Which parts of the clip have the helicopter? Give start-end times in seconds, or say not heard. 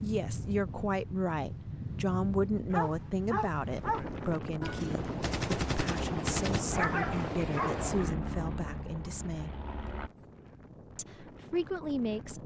5.0-10.1.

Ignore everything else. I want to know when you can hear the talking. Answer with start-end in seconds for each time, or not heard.
0.0-9.5, 10.9-12.4.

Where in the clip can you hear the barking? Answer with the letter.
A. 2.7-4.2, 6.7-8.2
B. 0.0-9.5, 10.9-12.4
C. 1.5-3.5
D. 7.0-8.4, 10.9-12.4
A.